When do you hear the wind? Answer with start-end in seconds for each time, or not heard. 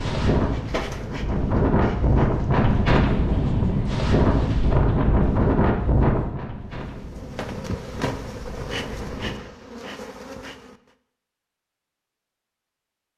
0.0-9.4.